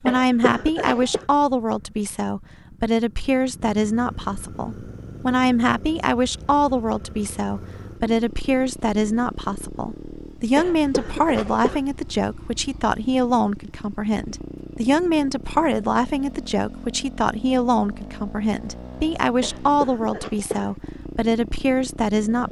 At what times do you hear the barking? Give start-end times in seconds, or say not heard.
not heard.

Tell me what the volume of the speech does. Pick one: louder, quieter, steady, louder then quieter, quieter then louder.
steady.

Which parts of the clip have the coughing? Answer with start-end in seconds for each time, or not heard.
0.1-1.2, 10.6-11.8, 19.4-20.8.